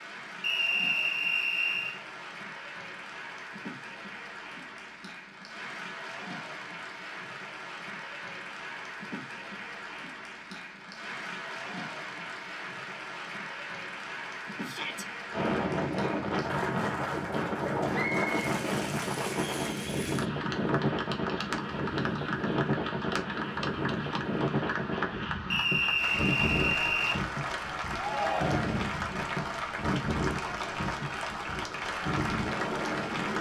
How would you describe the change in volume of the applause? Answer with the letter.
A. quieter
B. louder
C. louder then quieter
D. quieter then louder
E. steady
B.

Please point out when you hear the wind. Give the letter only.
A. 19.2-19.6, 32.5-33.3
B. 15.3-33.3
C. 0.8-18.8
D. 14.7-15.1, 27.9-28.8
B.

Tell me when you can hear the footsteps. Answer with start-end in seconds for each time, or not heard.
not heard.